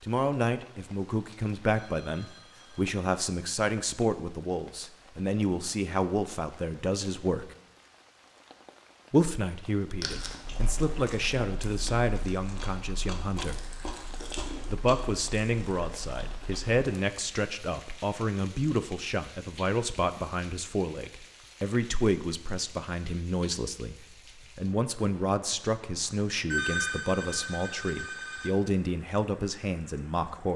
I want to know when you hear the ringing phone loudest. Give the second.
27 s.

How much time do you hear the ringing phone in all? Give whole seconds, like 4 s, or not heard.
4 s.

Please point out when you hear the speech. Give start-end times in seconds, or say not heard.
0.0-7.5, 9.1-13.7, 14.7-30.5.